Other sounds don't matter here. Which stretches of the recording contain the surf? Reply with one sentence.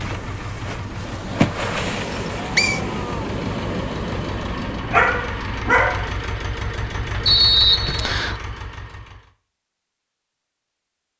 You can hear the surf from 0.0 to 6.3 s.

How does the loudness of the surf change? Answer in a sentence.
The volume of the surf goes down.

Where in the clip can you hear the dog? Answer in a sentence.
You can hear the dog from 4.9 to 6.0 s.